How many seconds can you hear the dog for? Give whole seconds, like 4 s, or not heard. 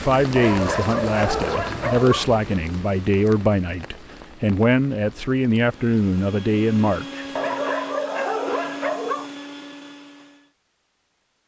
4 s.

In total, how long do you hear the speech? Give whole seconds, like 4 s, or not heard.
7 s.